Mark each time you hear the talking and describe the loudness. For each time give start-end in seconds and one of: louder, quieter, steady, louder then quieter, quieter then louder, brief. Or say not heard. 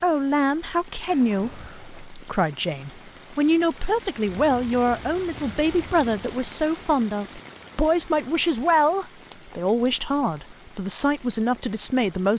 0.0-12.3 steady.